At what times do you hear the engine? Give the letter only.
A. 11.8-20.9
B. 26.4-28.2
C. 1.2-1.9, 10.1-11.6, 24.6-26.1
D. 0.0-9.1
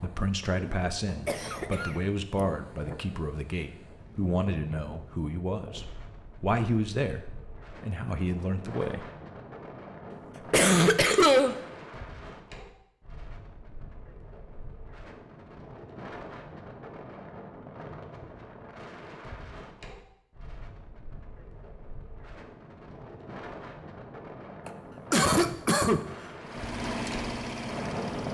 B.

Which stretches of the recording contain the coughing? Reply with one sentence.
You can hear the coughing from 1.2 to 1.9 s, from 10.1 to 11.6 s and from 24.6 to 26.1 s.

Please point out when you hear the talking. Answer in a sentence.
The talking can be heard from 0.0 to 9.1 s.